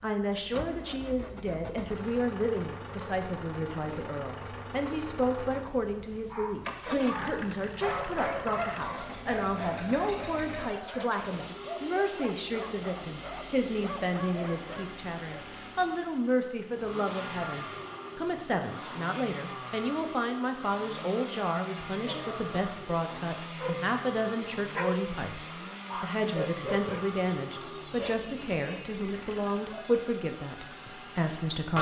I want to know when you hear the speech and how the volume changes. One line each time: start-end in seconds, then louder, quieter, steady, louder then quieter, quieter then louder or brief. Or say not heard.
0.0-31.7 steady.